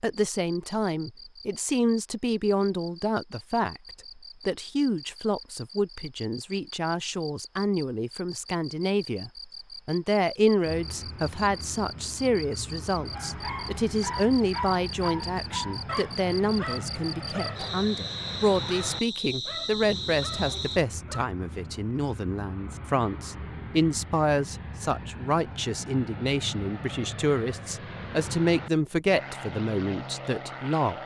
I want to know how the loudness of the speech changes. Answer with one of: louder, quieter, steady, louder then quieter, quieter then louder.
steady.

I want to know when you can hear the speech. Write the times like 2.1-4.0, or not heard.
0.0-3.8, 4.5-31.0.